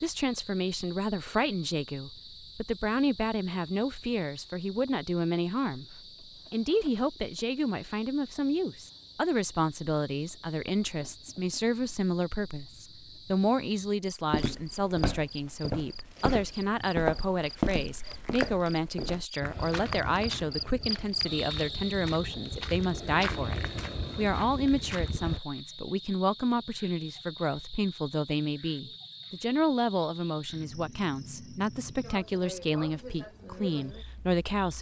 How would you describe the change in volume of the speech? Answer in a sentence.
The loudness of the speech stays about the same.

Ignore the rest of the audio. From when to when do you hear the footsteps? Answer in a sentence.
You can hear the footsteps from 14.3 to 25.4 s.